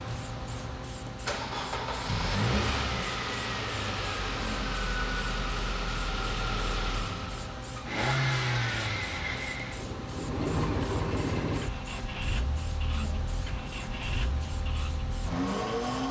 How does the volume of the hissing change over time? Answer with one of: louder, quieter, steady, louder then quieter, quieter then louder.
steady.